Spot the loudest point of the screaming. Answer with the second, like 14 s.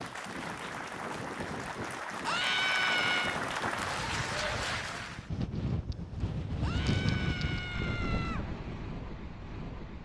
3 s.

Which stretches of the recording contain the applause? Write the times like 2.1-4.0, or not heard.
0.0-5.3.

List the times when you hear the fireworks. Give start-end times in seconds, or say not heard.
not heard.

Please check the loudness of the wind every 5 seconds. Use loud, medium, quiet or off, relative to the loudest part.
medium, loud.